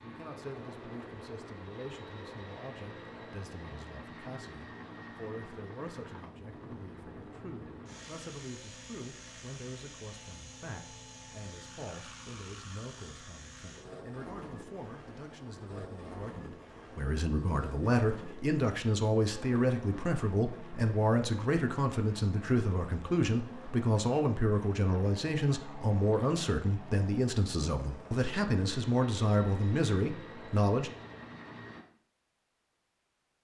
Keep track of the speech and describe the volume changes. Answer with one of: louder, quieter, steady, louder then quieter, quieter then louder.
louder.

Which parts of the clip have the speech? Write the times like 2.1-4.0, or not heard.
0.0-30.9.